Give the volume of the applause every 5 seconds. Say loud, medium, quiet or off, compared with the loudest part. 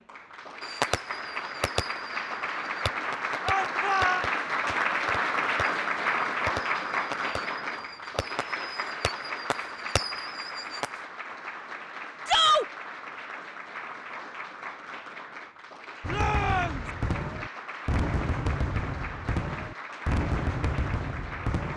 loud, loud, medium, medium, medium.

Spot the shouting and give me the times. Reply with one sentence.
The shouting can be heard from 3.5 to 4.2 s, from 12.2 to 12.7 s and from 16.1 to 16.9 s.